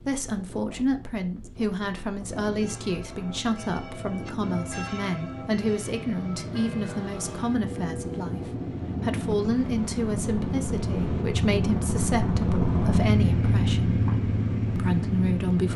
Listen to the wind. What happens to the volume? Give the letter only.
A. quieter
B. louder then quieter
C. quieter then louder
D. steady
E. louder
E.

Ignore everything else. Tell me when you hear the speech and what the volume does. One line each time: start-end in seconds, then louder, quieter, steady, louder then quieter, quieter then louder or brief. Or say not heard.
0.1-14.0 steady
14.8-15.7 brief.